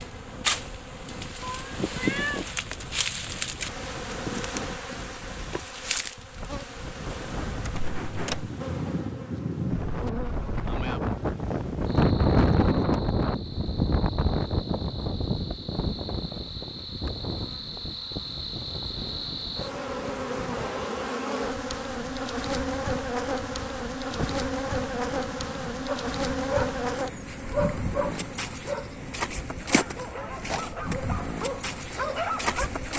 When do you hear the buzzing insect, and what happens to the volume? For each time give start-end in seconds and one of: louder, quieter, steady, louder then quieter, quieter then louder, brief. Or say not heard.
0.0-32.9 quieter then louder.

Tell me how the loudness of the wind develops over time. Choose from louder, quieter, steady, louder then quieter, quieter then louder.
louder then quieter.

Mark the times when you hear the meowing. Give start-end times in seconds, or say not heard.
1.4-2.5.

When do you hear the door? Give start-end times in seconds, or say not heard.
7.6-8.5.